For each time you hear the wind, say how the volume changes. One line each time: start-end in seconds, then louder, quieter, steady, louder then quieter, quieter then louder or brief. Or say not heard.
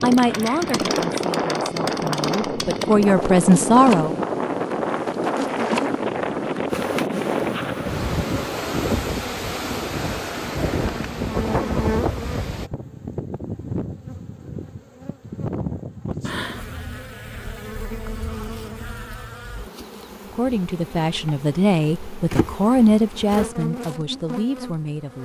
0.0-12.7 steady.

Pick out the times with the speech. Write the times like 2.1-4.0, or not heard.
0.0-4.2, 20.3-25.2.